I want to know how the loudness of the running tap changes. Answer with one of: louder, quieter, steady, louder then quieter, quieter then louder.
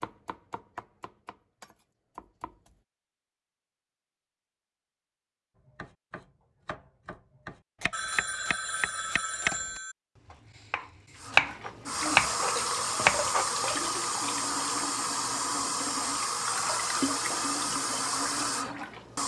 steady.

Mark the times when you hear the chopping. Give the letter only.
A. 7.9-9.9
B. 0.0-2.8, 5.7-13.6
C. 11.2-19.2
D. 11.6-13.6
B.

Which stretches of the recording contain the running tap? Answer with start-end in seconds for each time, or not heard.
11.2-19.2.